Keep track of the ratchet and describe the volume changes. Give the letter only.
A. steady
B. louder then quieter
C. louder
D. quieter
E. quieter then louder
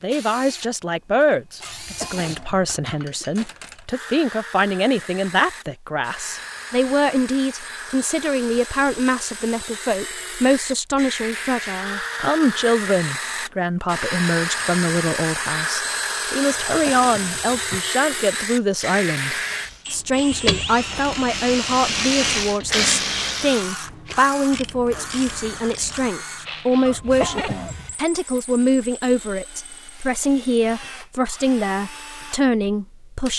B.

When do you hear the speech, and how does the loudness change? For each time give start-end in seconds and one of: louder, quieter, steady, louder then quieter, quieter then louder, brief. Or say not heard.
0.0-33.3 steady.